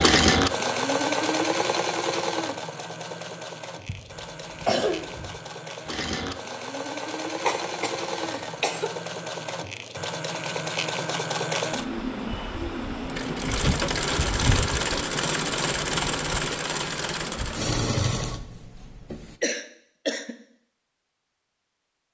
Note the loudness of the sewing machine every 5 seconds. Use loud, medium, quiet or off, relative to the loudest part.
loud, medium, loud, loud, off.